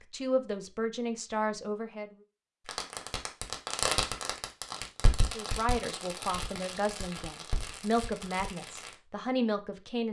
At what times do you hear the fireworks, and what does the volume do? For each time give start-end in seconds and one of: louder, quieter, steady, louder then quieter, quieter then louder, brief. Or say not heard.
2.6-8.9 quieter.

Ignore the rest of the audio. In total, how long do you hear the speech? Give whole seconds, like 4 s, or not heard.
7 s.